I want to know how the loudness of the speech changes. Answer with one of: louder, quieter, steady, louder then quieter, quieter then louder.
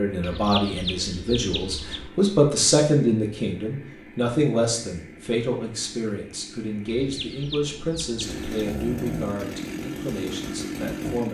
quieter.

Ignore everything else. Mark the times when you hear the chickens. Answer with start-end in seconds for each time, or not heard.
0.2-2.1, 7.0-8.4.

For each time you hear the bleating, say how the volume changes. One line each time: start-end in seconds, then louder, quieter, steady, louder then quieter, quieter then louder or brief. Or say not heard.
not heard.